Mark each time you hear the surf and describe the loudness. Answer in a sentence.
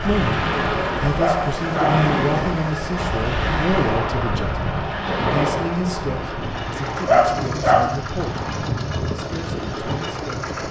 The surf can be heard from 0.0 to 10.3 s, getting quieter.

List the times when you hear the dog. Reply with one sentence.
The dog can be heard from 1.1 to 2.1 s and from 7.0 to 8.0 s.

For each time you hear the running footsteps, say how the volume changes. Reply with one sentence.
You can't hear the running footsteps here.